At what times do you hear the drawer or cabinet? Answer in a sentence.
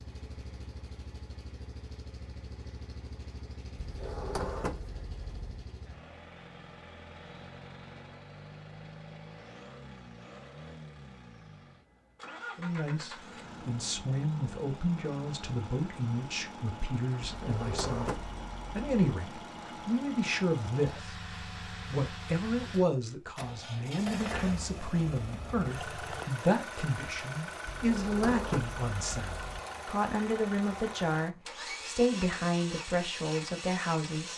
The drawer or cabinet can be heard from 3.8 to 5.7 s, from 17.2 to 18.9 s and from 27.6 to 29.6 s.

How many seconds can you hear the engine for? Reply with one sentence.
You can hear the engine for 34 seconds altogether.